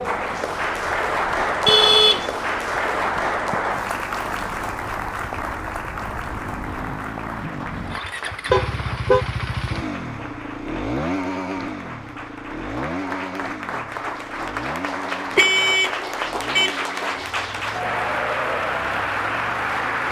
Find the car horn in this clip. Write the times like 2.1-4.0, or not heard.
1.6-2.4, 8.5-9.2, 15.3-17.2.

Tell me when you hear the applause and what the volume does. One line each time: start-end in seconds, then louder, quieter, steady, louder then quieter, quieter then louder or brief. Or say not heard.
0.0-20.0 quieter then louder.